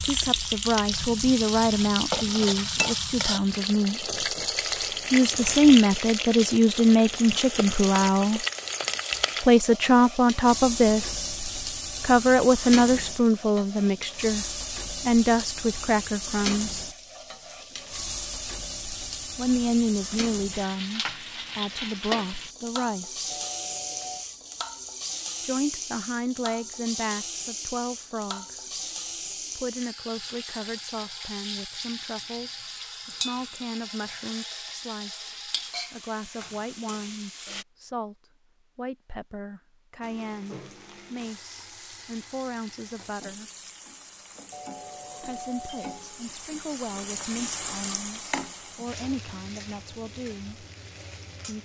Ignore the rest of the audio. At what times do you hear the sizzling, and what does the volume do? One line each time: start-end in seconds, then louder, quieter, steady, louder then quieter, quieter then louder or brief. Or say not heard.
0.0-37.6 quieter
40.0-51.6 louder then quieter.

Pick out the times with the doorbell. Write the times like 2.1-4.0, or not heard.
23.3-24.2, 44.5-46.0.